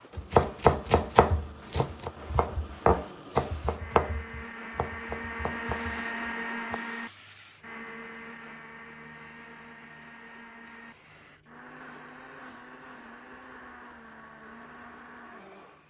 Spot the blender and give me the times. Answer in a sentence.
The blender can be heard from 0.0 to 15.8 s.